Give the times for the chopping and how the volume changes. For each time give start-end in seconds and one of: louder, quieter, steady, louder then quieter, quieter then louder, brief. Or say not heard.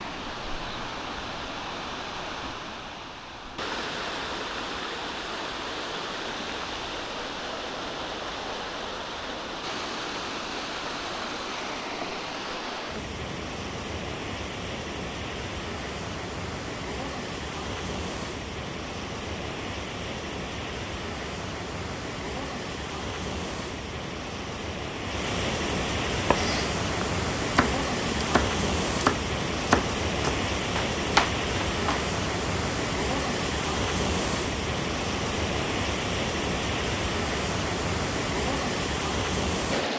26.1-32.0 louder.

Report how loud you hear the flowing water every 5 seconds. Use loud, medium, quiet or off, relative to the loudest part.
medium, medium, medium, medium, medium, loud, loud, loud.